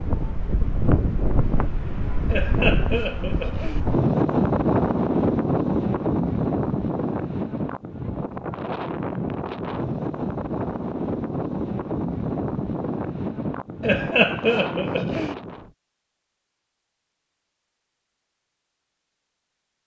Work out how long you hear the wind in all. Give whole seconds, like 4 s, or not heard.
16 s.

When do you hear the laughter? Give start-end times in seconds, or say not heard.
2.2-3.8, 13.8-15.3.